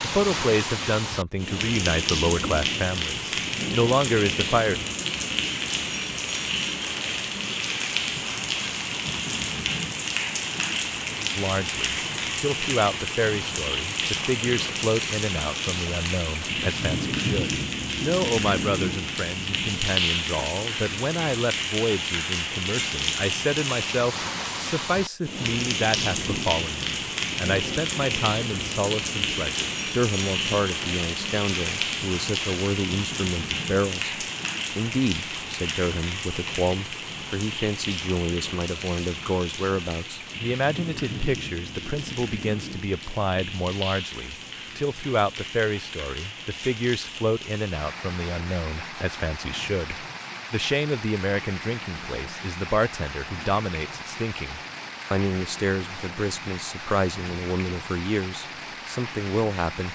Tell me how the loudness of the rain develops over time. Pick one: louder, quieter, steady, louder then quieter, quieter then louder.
quieter.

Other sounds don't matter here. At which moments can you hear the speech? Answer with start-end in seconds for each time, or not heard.
0.0-4.8, 11.3-59.8.